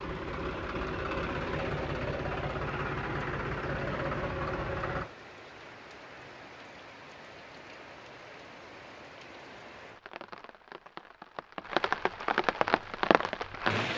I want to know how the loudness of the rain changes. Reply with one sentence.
The volume of the rain goes up.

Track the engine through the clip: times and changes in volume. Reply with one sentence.
You can hear the engine from 0.0 to 5.1 s, at a steady volume.